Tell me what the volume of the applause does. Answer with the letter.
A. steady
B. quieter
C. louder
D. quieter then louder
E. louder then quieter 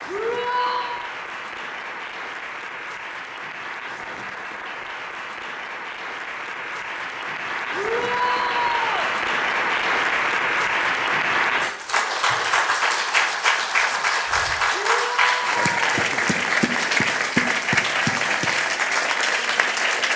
C.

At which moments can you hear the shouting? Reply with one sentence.
The shouting can be heard from 0.1 to 1.1 s, from 7.7 to 9.2 s and from 14.7 to 16.1 s.